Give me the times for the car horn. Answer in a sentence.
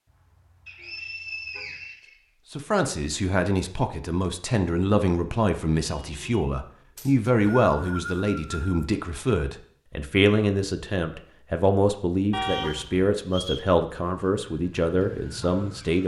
You can hear the car horn from 0.1 to 1.9 s, from 6.0 to 6.5 s and from 12.3 to 13.1 s.